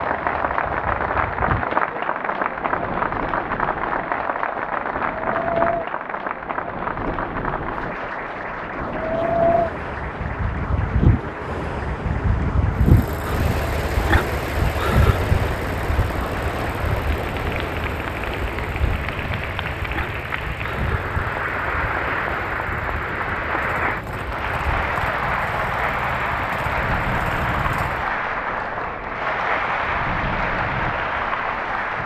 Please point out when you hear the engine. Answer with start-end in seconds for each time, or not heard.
12.7-28.1.